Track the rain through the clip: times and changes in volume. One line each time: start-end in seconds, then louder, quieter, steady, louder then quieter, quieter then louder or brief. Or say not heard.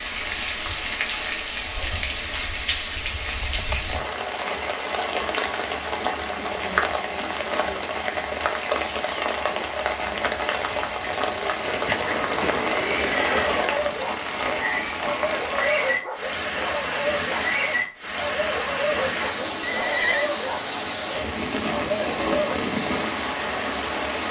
0.0-24.2 steady.